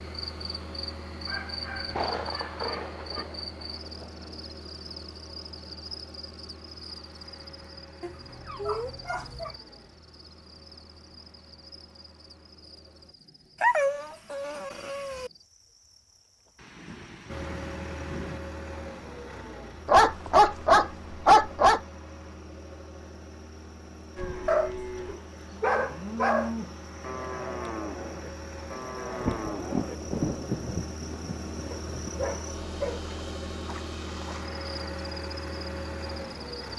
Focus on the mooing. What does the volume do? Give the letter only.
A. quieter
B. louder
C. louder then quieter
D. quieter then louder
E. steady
E.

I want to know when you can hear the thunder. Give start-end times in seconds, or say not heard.
1.9-4.3, 16.6-18.4, 29.2-32.4.